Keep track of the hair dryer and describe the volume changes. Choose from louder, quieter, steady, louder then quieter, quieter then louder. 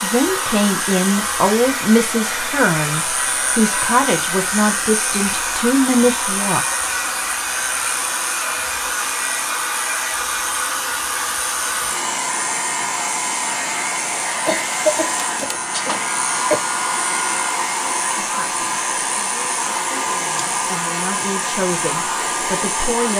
steady.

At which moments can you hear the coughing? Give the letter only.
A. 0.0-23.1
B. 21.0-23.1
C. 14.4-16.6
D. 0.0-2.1
C.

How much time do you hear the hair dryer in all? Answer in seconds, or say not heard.
23 s.